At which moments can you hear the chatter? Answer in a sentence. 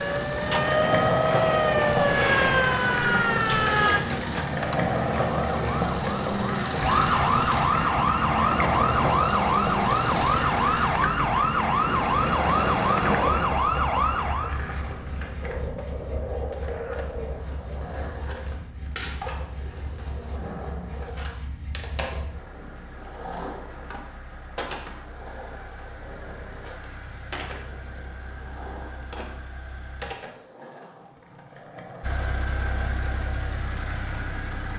You can't hear the chatter here.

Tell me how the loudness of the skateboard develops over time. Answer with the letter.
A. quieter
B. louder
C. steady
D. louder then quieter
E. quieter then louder
A.